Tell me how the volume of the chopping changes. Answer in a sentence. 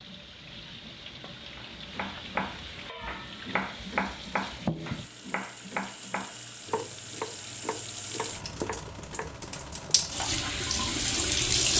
The loudness of the chopping goes down.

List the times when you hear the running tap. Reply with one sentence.
The running tap can be heard from 0.0 to 11.7 s.